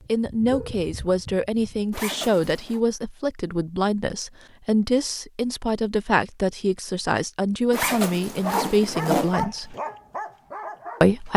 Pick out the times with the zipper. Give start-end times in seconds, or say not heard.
1.9-2.8, 7.7-9.4.